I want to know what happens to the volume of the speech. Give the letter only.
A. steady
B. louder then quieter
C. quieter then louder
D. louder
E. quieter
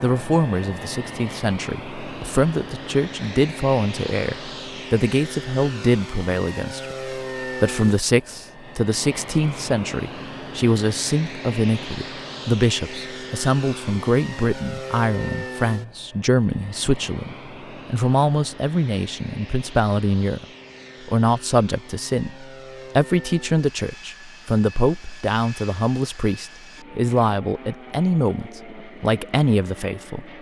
A.